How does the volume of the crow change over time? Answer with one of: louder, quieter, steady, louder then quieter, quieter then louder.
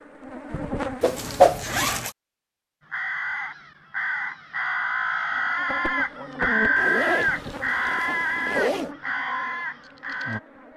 louder then quieter.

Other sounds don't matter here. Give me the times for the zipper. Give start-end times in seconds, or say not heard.
1.1-2.1, 6.8-8.9.